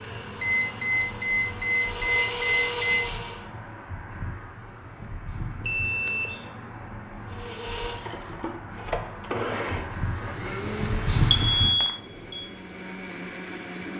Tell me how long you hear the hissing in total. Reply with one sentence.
The hissing can be heard for 14 seconds in total.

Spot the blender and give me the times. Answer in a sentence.
The blender can be heard from 0.0 to 3.5 s and from 7.2 to 13.9 s.